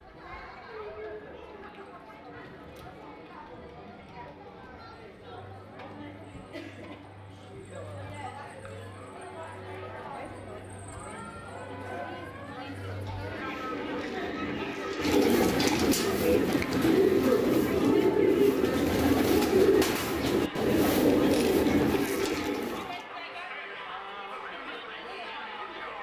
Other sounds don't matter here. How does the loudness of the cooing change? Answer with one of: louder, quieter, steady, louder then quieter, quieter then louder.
louder.